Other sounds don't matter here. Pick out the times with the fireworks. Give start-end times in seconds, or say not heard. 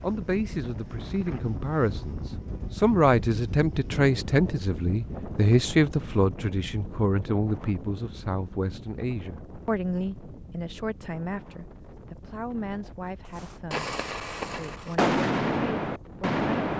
13.3-16.7.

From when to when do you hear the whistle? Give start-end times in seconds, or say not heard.
not heard.